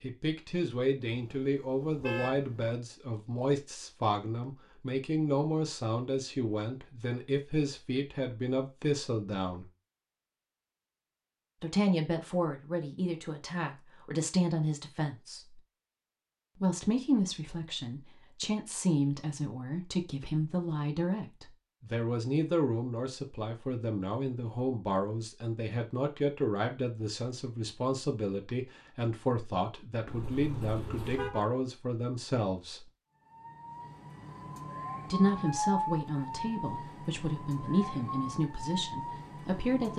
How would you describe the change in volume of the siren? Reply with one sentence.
The loudness of the siren goes up, then down.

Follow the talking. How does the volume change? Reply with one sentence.
The volume of the talking stays about the same.